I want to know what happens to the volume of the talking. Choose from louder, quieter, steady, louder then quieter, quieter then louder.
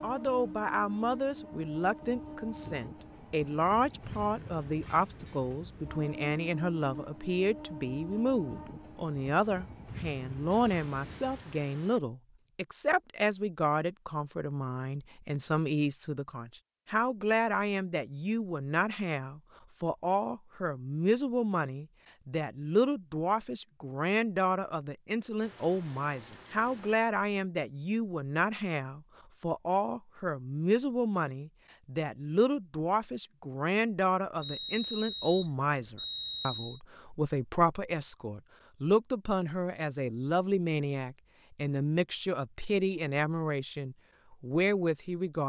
steady.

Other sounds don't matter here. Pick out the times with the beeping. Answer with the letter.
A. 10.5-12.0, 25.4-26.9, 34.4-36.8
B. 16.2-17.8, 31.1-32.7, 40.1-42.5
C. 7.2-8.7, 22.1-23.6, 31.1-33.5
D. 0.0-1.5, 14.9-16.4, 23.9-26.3
A.